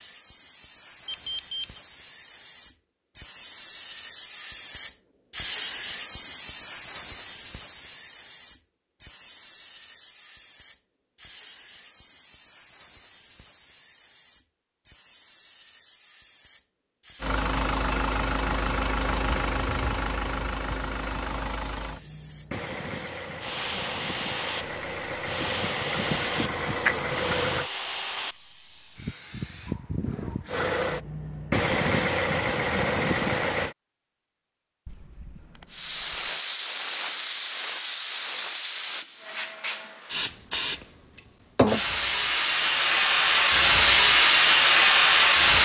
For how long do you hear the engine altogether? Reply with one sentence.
The engine can be heard for 14 seconds in total.